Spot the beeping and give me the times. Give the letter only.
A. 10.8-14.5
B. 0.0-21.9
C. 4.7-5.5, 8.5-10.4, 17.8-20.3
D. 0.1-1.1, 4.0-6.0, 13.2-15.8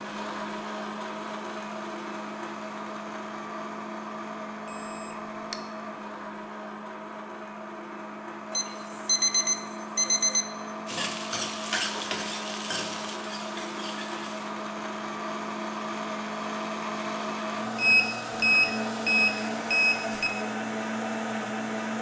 C.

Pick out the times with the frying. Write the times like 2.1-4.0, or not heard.
10.8-14.5.